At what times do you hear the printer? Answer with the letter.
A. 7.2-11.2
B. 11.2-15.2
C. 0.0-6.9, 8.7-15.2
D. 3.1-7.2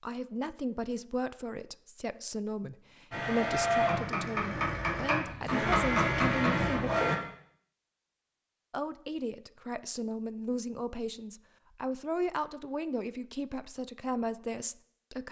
D.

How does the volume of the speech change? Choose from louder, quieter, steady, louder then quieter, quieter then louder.
steady.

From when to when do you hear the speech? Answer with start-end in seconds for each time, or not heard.
0.0-6.9, 8.7-15.2.